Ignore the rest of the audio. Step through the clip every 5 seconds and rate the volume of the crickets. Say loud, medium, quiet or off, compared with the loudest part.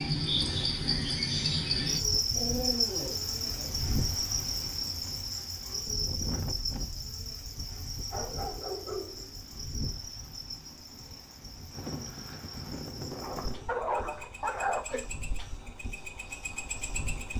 loud, medium, quiet, medium.